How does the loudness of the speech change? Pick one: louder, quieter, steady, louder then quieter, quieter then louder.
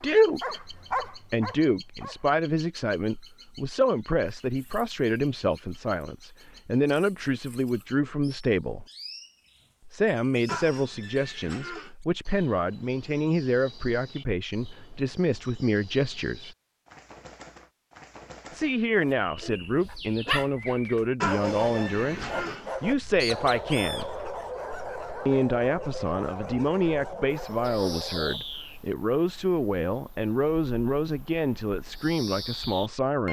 steady.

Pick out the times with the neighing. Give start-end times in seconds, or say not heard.
10.4-11.9, 21.2-22.7.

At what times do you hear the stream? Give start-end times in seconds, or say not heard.
not heard.